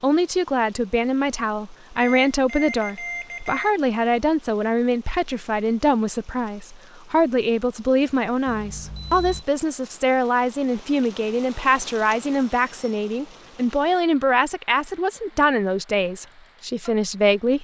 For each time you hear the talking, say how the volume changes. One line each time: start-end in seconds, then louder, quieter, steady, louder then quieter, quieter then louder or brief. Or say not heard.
0.0-17.5 steady.